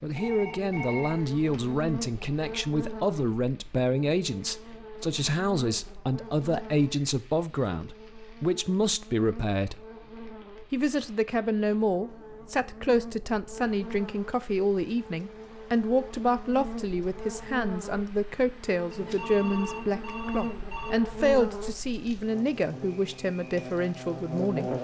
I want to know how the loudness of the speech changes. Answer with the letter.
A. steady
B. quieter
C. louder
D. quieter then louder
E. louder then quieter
A.